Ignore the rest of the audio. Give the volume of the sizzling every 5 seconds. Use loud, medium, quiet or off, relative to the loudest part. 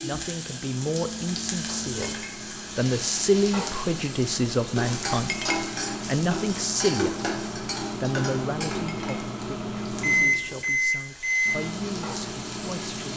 loud, loud, medium.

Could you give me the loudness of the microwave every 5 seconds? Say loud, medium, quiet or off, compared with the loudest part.
quiet, medium, loud.